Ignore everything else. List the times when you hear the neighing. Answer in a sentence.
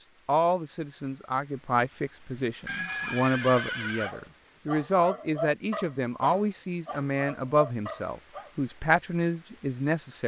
The neighing can be heard from 2.6 to 4.1 s.